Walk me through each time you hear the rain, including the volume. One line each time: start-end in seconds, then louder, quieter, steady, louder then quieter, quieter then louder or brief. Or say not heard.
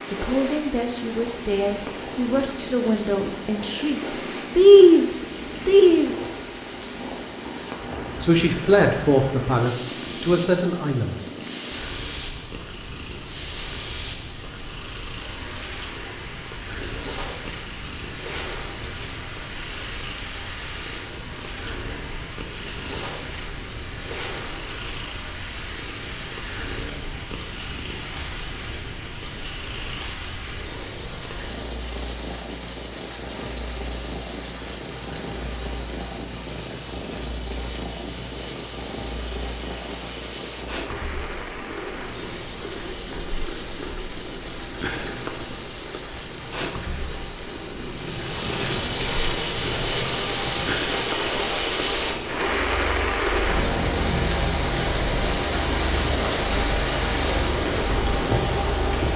0.0-59.1 louder.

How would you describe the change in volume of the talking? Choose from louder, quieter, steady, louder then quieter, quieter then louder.
louder then quieter.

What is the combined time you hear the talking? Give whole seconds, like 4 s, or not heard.
9 s.